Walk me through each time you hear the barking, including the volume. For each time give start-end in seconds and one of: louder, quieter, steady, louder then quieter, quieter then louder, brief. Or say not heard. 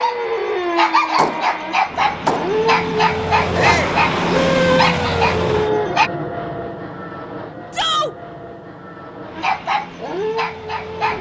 0.0-6.1 steady
9.3-11.1 brief.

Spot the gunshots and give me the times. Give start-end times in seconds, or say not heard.
0.7-2.5.